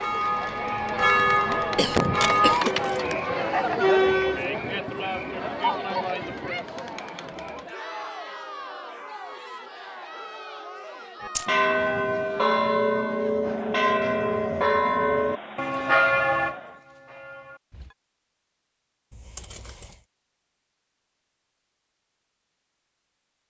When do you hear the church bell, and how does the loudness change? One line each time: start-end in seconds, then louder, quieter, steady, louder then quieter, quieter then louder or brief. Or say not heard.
0.0-2.6 brief
11.2-17.9 quieter.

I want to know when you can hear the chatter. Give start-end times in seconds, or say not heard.
0.0-16.8.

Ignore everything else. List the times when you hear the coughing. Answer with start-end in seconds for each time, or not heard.
1.4-3.1.